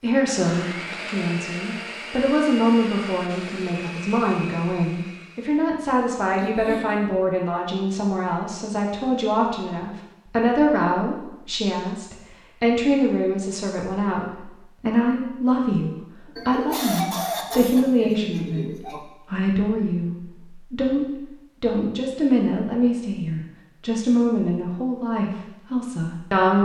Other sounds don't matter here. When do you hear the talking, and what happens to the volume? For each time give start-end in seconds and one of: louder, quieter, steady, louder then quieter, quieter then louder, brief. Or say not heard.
0.0-26.6 steady.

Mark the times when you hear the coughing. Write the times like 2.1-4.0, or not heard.
6.3-7.0, 16.4-19.0.